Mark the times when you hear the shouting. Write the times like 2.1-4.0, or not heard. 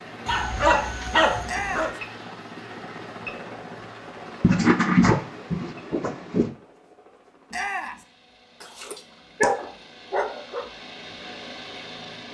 1.4-2.0, 7.5-8.1.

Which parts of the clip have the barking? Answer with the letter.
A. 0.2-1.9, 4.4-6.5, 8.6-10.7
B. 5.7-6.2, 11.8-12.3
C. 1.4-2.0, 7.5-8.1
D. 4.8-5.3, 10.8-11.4
A.